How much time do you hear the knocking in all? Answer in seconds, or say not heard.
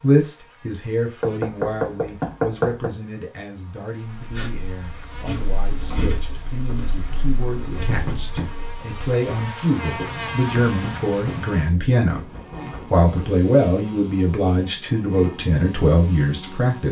4 s.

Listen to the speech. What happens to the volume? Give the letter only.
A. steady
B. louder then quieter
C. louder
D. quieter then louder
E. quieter
D.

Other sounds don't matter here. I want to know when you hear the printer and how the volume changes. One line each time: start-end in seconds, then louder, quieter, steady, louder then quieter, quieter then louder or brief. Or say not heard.
not heard.